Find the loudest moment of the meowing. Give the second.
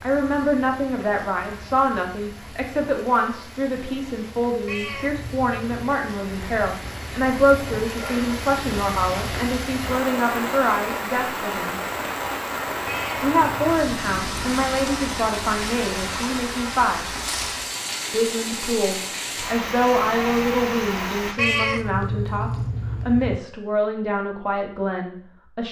22 s.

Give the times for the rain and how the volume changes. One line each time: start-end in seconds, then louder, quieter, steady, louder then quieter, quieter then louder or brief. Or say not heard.
0.0-21.4 louder.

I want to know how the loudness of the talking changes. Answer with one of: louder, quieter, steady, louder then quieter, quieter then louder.
steady.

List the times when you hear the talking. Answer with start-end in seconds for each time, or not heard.
0.0-11.8, 13.2-17.1, 18.1-25.6.